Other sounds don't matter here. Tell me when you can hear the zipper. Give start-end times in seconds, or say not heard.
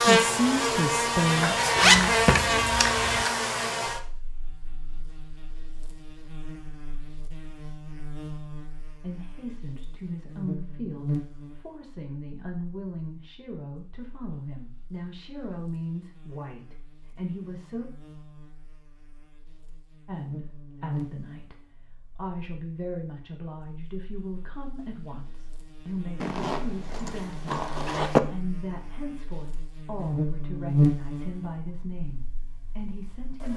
1.8-3.2, 26.2-28.2.